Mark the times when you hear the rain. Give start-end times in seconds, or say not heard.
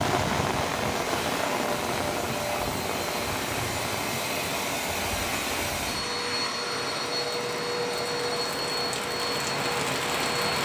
0.0-10.6.